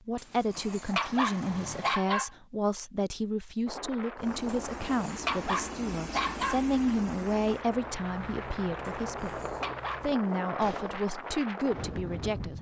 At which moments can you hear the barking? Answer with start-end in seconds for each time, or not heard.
0.1-2.3, 4.5-6.7, 8.9-10.2.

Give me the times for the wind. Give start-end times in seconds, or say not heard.
3.6-12.5.